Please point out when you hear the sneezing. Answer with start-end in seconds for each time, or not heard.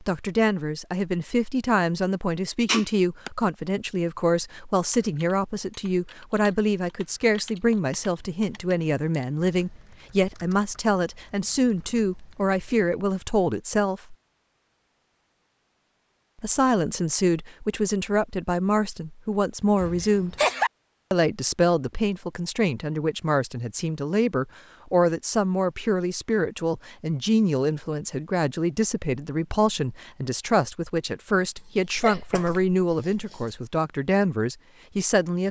2.6-3.3, 19.8-20.7, 31.6-33.5.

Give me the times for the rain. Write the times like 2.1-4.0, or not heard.
not heard.